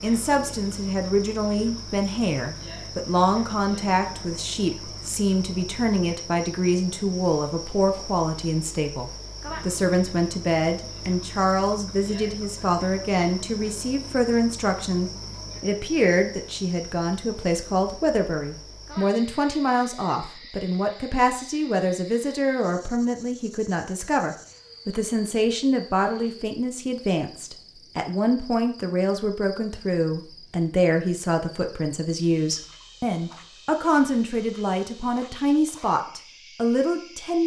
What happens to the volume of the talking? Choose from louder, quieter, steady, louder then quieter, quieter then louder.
steady.